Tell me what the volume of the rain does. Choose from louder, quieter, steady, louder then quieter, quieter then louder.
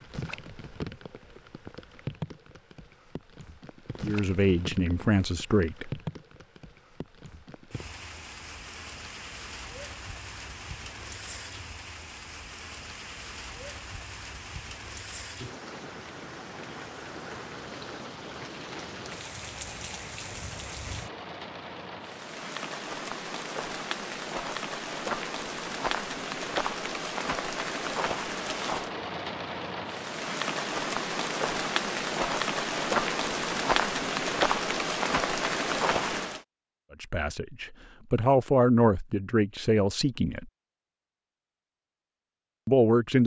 louder.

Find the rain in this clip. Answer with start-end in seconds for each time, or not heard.
0.0-36.4.